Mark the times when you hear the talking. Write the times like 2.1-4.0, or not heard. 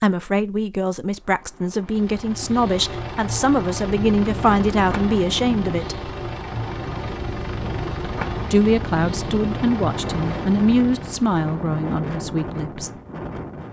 0.0-6.0, 8.5-12.9.